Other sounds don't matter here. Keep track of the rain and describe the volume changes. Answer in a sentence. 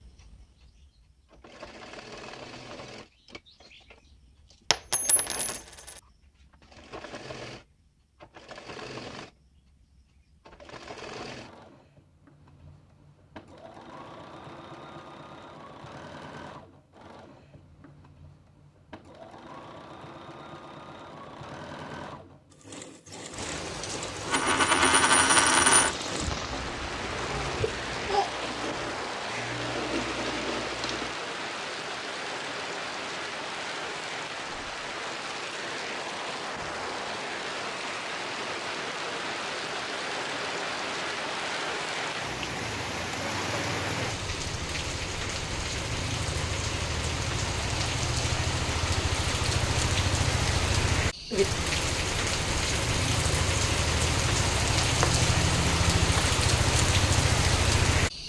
The volume of the rain goes up.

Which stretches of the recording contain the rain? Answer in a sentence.
The rain can be heard from 23.3 to 58.2 s.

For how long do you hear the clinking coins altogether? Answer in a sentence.
You can hear the clinking coins for 4 seconds altogether.